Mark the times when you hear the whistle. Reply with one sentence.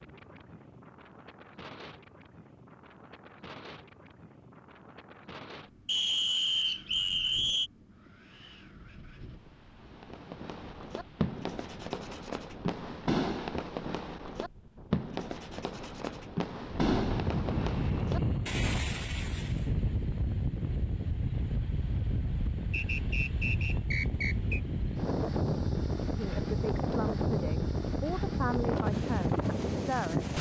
You can hear the whistle from 5.8 to 7.7 s and from 22.7 to 24.6 s.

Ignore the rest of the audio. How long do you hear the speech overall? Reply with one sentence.
You can hear the speech for 4 seconds altogether.